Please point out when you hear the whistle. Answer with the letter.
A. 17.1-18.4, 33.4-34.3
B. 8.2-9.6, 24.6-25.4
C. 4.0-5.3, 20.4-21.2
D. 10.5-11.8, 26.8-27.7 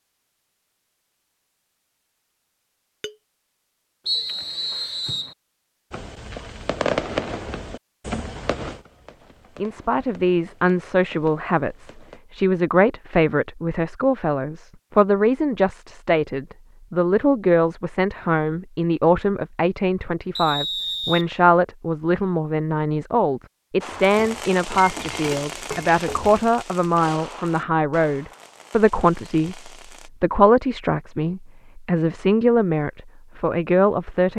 C.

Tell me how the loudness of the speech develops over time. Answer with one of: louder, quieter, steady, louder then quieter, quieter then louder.
steady.